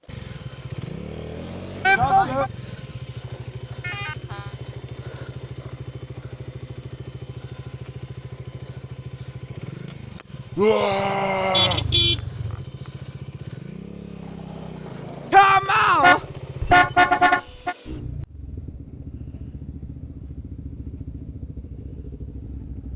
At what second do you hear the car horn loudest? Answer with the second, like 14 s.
17 s.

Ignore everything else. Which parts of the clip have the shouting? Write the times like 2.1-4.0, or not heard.
1.9-2.5, 10.6-11.8, 15.3-16.2.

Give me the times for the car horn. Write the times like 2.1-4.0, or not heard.
3.8-4.5, 11.5-12.6, 16.0-17.8.